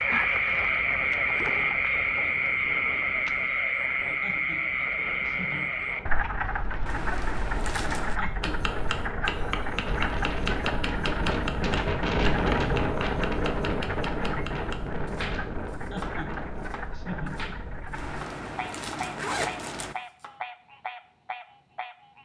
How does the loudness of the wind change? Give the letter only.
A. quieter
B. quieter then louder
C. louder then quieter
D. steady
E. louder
C.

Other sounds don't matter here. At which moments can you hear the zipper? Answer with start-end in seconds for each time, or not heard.
6.8-8.2, 17.9-19.9.